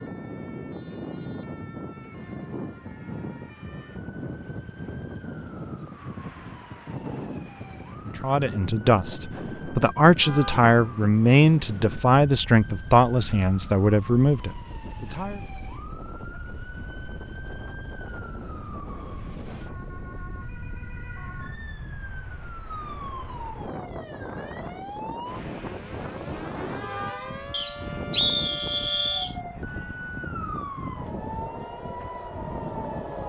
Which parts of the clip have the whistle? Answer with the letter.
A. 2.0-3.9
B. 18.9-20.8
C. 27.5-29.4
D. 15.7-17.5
C.